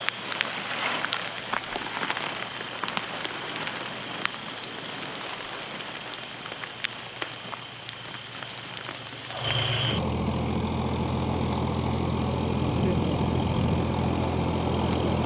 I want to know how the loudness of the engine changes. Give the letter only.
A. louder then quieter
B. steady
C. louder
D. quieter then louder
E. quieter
C.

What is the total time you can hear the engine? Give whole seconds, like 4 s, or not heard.
15 s.